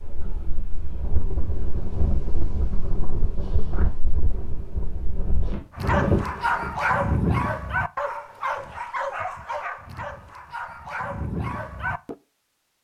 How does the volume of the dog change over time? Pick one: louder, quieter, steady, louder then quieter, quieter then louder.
quieter.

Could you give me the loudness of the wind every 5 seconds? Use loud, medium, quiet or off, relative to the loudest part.
medium, loud, off.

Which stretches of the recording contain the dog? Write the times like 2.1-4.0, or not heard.
5.8-12.2.